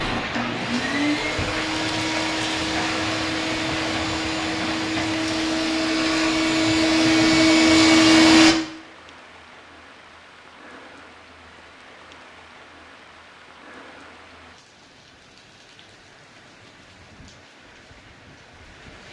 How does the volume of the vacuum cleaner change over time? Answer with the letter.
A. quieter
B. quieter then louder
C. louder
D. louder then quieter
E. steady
C.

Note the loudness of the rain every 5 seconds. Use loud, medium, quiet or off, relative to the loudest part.
loud, medium, quiet, quiet.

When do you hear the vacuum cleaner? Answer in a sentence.
The vacuum cleaner can be heard from 0.0 to 8.6 s.